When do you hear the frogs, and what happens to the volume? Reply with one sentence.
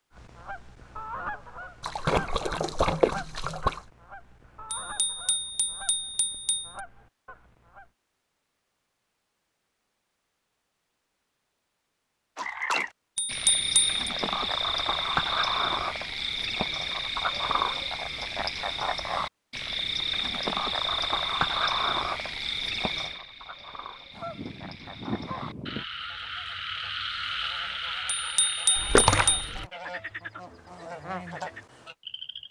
You can hear the frogs from 12.3 to 32.4 s, getting quieter.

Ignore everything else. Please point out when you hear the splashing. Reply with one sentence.
You can hear the splashing from 1.8 to 3.8 s and from 28.8 to 29.6 s.